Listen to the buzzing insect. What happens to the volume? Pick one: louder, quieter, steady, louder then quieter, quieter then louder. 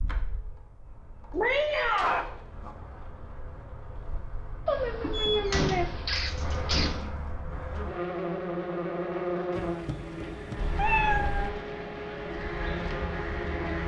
louder.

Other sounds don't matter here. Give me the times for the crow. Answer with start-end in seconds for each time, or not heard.
12.2-13.8.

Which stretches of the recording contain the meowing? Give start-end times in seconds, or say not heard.
1.3-2.2, 4.7-7.0, 9.5-11.5.